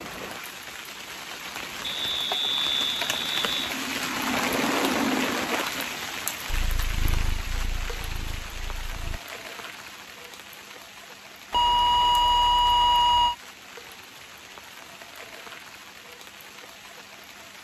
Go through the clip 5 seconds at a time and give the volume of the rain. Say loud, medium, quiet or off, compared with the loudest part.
loud, loud, quiet, quiet.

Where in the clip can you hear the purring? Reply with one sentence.
You can hear the purring from 6.5 to 9.2 s.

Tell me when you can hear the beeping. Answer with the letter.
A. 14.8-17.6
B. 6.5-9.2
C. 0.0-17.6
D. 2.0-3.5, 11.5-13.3
D.